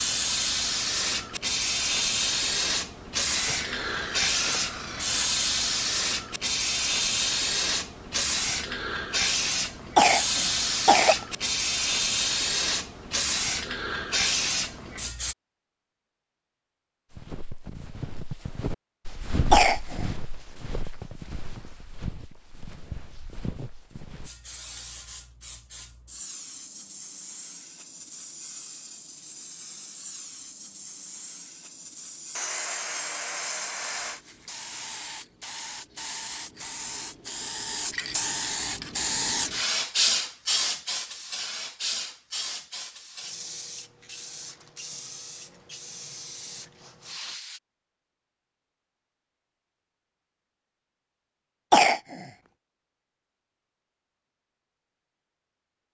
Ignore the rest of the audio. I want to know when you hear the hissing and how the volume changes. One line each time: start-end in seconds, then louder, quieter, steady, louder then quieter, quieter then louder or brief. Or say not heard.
0.0-15.3 steady
24.2-47.6 louder then quieter.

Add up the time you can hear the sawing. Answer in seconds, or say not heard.
4 s.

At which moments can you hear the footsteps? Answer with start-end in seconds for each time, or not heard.
17.1-24.3.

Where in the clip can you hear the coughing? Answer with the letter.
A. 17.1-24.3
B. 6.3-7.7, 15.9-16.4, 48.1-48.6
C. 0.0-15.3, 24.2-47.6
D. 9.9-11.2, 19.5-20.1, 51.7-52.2
D.